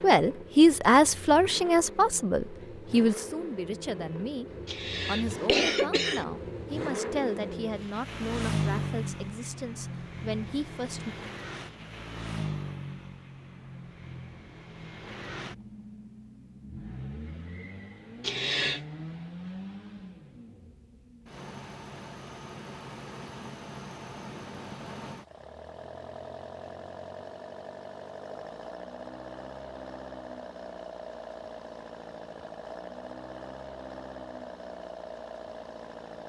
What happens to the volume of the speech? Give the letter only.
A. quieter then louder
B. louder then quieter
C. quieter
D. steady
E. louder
C.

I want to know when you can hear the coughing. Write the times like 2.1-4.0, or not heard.
4.7-6.2, 18.2-18.9.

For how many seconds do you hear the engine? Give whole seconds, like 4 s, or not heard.
36 s.